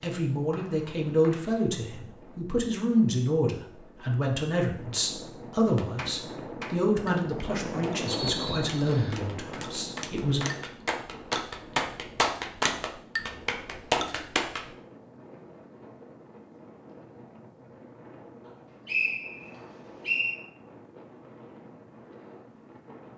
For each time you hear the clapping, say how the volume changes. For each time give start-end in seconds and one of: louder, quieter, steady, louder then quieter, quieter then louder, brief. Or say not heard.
5.7-14.7 louder.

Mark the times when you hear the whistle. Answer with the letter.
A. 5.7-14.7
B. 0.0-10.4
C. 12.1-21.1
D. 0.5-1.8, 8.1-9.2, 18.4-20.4
D.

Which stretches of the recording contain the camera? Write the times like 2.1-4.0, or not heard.
not heard.